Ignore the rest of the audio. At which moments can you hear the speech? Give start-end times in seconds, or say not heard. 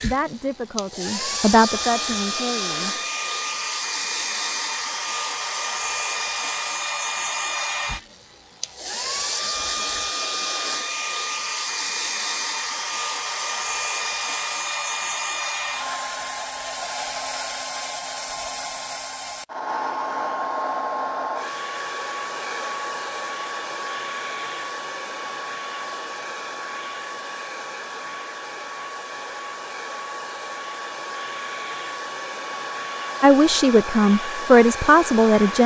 0.0-3.0, 33.2-35.6.